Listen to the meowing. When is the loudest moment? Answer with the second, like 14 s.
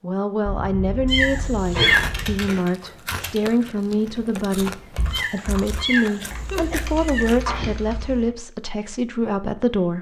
2 s.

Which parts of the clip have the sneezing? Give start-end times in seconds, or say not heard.
0.5-2.4, 6.3-8.3.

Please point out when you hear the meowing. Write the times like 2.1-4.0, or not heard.
1.1-2.1, 5.1-7.3.